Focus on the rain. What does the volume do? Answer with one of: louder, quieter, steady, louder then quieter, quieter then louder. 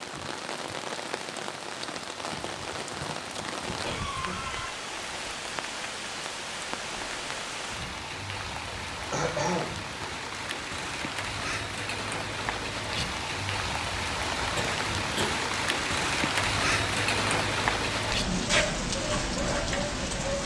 louder.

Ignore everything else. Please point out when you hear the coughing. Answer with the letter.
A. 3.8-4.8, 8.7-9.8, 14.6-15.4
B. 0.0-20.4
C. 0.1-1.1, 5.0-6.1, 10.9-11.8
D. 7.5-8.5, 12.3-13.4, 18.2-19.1
A.